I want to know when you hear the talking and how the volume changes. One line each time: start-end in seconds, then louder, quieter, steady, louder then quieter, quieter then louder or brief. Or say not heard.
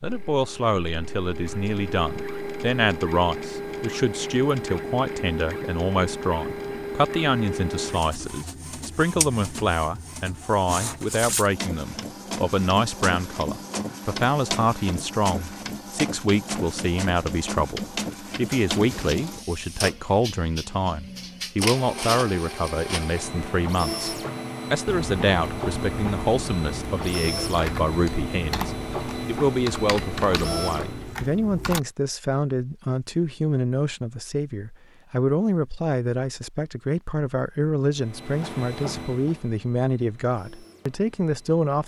0.0-41.8 steady.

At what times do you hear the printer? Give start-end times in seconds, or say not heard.
0.0-31.2, 38.0-41.8.